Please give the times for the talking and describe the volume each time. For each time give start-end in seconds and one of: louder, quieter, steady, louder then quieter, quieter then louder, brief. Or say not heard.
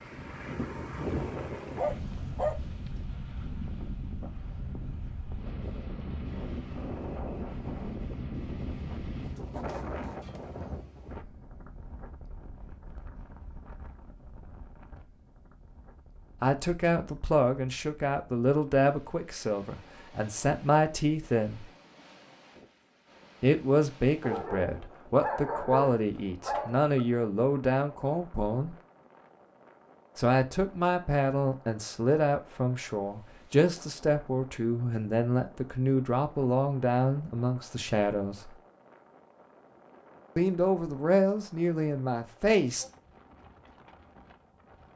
16.4-21.7 quieter then louder
23.4-28.8 steady
30.1-38.5 steady
40.4-42.9 brief.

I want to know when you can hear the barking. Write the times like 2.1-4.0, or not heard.
1.6-2.6, 24.2-27.1.